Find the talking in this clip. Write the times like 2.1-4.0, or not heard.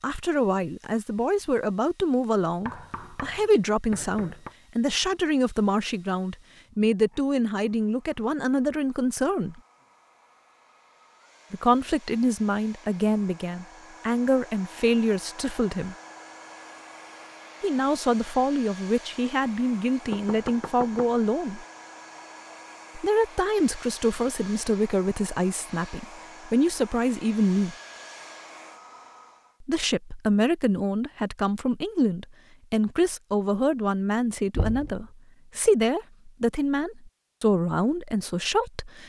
0.0-9.6, 11.5-15.9, 17.6-21.6, 22.9-27.8, 29.6-39.0.